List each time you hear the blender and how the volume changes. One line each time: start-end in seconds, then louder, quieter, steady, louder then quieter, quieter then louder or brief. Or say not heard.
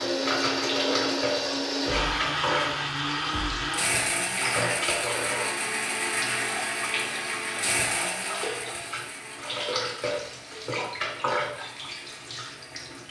0.0-13.0 quieter.